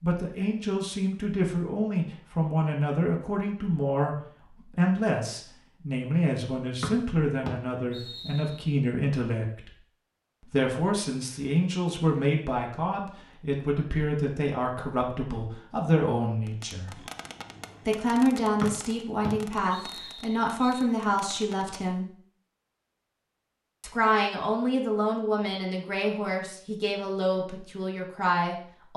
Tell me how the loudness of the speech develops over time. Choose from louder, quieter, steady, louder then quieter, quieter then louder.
steady.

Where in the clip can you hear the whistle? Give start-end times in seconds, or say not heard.
6.8-8.7, 18.6-20.9.